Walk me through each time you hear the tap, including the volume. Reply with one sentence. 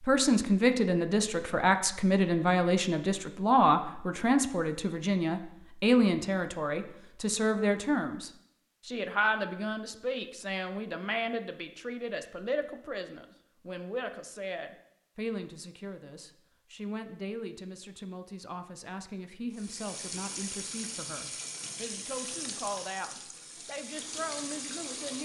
The tap can be heard from 19.5 to 25.2 s, getting quieter then louder.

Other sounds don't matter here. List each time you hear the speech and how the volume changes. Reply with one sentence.
You can hear the speech from 0.0 to 25.2 s, getting quieter.